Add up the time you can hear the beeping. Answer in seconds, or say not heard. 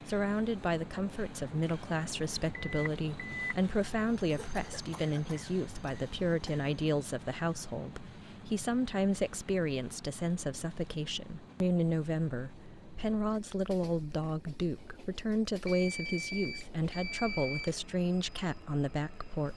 3 s.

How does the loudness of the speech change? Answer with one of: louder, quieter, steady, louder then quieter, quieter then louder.
steady.